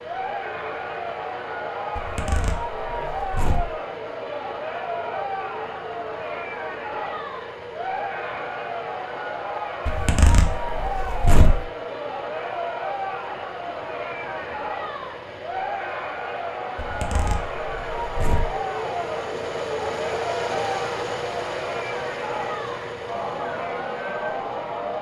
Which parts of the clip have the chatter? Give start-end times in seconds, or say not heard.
0.0-24.9.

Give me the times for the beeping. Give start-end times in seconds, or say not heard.
not heard.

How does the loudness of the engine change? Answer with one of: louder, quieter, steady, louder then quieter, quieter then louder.
louder.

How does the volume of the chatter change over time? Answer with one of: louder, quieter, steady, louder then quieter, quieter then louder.
steady.